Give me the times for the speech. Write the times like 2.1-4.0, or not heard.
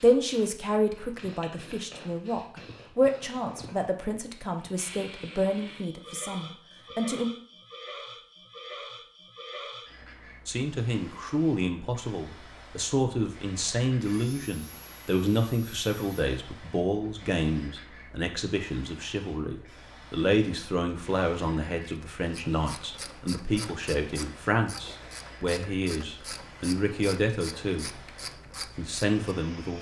0.0-7.3, 10.4-28.0, 28.8-29.7.